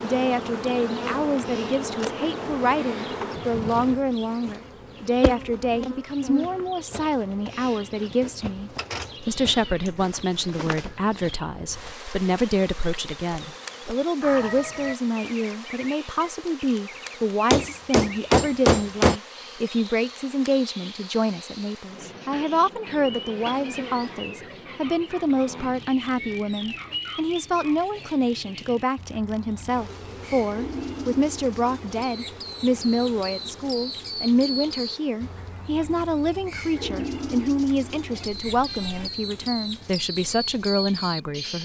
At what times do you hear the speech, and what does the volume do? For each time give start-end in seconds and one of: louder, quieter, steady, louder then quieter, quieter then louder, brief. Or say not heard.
0.0-41.6 steady.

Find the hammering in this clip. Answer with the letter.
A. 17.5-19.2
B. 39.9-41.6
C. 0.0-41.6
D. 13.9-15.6
A.